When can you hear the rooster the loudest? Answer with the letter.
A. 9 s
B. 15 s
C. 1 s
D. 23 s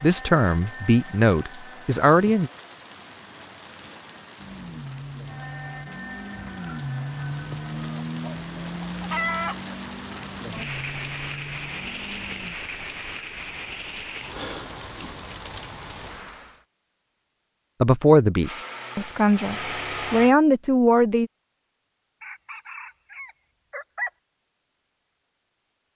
A.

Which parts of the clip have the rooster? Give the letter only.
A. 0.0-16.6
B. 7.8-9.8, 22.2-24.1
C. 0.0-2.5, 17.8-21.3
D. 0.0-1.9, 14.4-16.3
B.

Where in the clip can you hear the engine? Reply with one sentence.
The engine can be heard from 4.3 to 12.6 s and from 18.4 to 20.4 s.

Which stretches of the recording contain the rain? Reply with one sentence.
You can hear the rain from 0.0 to 16.6 s.